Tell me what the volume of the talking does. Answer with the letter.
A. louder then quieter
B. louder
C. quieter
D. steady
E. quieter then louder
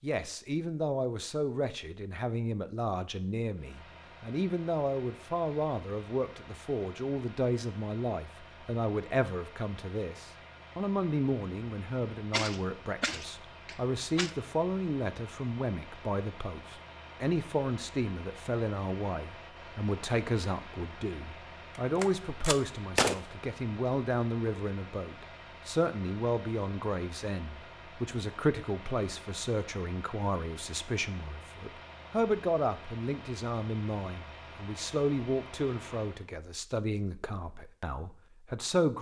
D.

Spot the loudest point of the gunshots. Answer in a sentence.
The loudest moment of the gunshots is at 23 seconds.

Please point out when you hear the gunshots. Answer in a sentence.
The gunshots can be heard from 12.1 to 14.3 s and from 21.8 to 23.1 s.